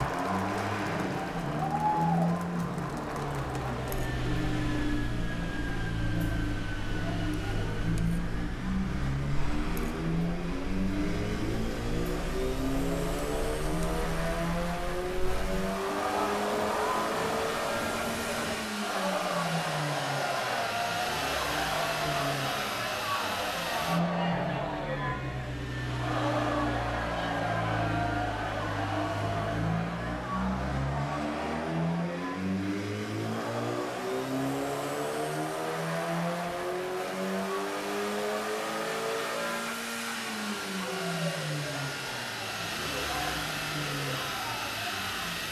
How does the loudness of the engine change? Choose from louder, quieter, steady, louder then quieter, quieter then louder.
steady.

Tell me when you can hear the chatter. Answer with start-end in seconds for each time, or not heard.
0.0-45.4.